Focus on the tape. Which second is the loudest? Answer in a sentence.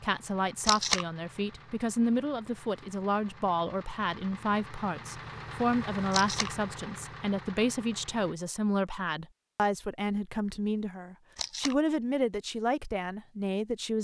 The volume of the tape peaks at 1 second.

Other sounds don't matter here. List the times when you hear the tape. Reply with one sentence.
The tape can be heard from 0.7 to 1.1 s, from 6.1 to 6.5 s and from 11.3 to 11.8 s.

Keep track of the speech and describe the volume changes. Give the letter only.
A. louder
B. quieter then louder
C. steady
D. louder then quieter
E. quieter
C.